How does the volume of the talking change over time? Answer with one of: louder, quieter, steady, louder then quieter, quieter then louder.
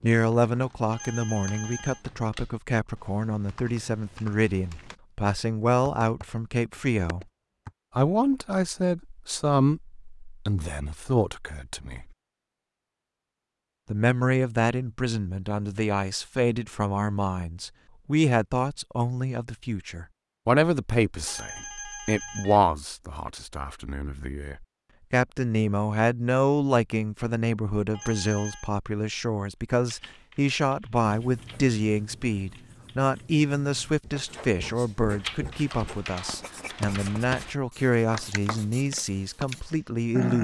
steady.